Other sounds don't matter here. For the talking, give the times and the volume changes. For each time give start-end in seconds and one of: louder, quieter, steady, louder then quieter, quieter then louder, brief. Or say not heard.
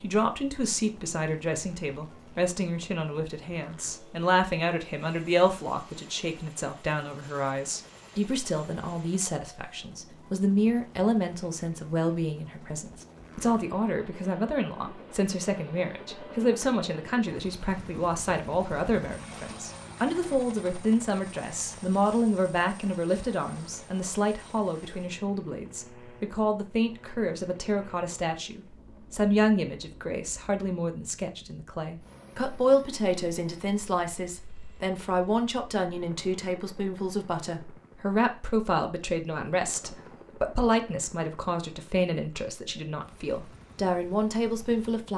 0.0-45.1 steady.